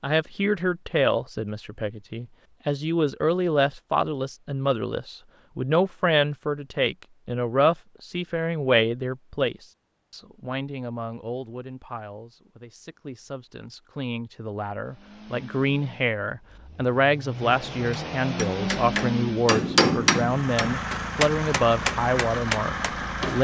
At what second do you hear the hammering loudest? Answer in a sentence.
The volume of the hammering peaks at 20 seconds.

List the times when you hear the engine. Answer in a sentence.
You can hear the engine from 14.8 to 23.3 s.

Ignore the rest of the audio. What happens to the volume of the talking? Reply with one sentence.
The loudness of the talking goes down, then up.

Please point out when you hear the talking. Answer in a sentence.
You can hear the talking from 0.0 to 23.3 s.